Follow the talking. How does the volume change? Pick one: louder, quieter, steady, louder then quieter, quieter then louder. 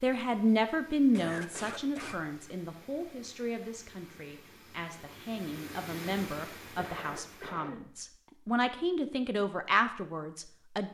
quieter then louder.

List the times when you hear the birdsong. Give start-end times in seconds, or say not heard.
not heard.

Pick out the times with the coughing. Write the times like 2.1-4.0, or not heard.
1.1-2.4, 6.8-7.8.